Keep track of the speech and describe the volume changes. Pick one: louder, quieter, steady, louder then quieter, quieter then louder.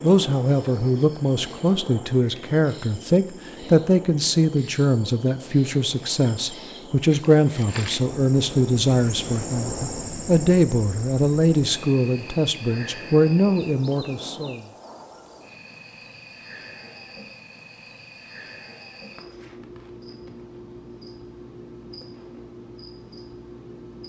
steady.